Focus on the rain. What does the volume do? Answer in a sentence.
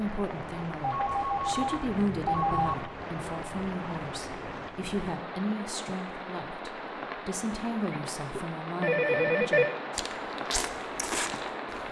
The volume of the rain stays about the same.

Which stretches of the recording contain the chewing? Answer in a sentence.
The chewing can be heard from 9.9 to 11.8 s.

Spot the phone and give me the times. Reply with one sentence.
You can hear the phone from 0.8 to 2.8 s and from 7.9 to 9.8 s.